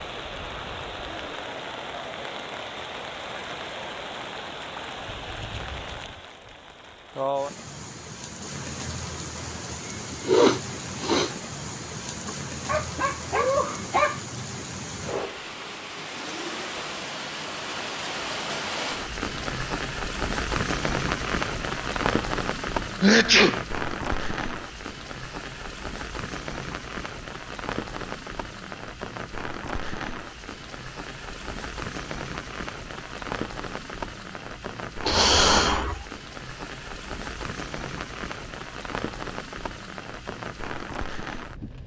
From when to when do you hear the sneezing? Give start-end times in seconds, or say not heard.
10.2-11.3, 23.0-23.6, 35.0-36.0.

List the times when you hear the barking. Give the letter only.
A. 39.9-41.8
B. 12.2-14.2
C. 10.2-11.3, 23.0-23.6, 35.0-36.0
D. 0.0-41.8
B.